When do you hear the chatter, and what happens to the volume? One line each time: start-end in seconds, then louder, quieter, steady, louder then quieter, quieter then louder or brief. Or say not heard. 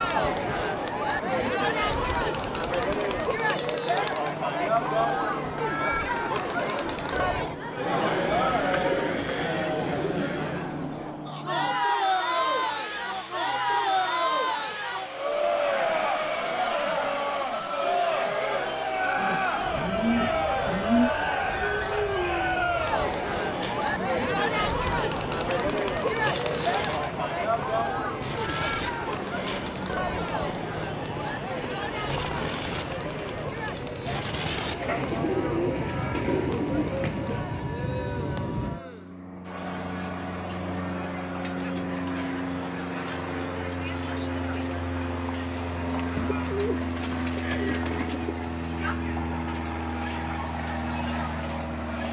0.0-52.0 quieter.